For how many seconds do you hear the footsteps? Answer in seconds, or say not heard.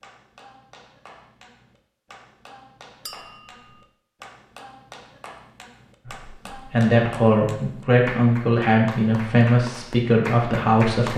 not heard.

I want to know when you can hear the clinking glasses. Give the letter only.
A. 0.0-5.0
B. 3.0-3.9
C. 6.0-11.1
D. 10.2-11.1
B.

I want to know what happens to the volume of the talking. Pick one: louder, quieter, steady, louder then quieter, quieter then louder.
steady.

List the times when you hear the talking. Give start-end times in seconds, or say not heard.
6.0-11.1.